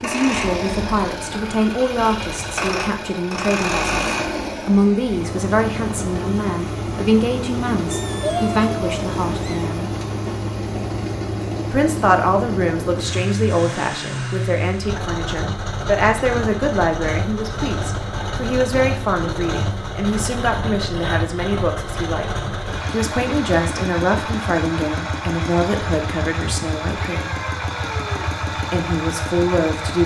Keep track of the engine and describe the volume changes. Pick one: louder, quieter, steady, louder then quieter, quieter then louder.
steady.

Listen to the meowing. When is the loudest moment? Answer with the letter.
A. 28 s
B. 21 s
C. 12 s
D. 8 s
D.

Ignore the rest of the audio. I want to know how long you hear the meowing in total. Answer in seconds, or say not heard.
3 s.